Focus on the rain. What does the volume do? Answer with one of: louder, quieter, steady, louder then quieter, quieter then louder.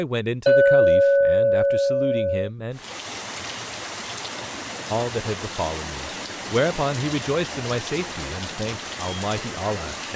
steady.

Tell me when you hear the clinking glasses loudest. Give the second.
1 s.